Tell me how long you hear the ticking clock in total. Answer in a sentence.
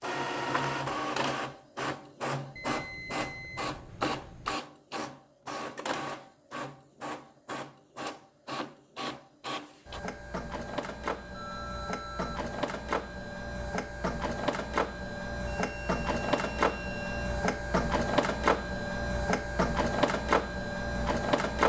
You can't hear the ticking clock here.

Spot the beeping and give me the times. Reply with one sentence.
You can hear the beeping from 2.5 to 4.5 s, from 11.3 to 12.4 s and from 15.5 to 17.2 s.